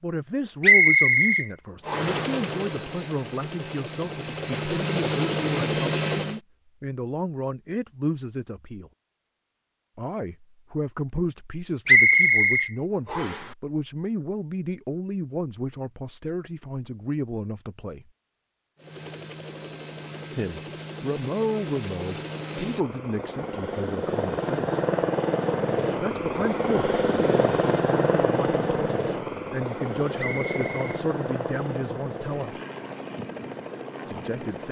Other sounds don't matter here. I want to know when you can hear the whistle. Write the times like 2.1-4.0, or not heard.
0.6-2.2, 11.8-13.4, 30.1-31.8.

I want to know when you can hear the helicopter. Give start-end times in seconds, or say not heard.
1.8-6.4, 18.8-34.6.